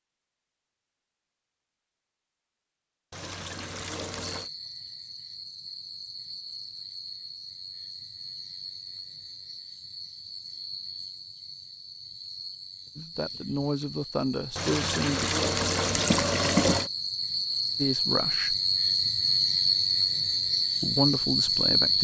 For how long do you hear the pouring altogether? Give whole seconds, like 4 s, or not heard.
4 s.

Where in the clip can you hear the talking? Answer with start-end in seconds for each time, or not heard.
12.9-15.3, 17.8-18.6, 20.8-21.9.